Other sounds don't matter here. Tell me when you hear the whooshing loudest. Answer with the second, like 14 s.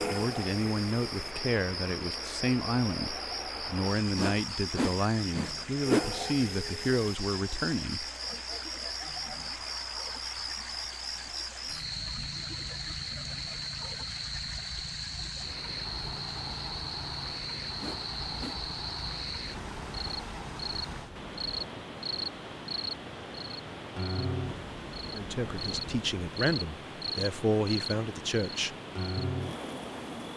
6 s.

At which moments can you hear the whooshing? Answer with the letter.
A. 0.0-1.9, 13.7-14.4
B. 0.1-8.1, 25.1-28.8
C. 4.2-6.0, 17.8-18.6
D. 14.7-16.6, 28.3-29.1
C.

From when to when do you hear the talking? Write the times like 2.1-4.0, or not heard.
0.1-8.1, 25.1-28.8.